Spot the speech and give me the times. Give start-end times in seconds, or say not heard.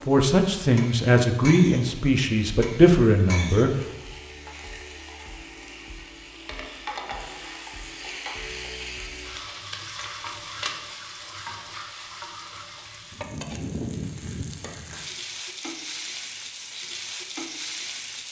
0.1-3.8.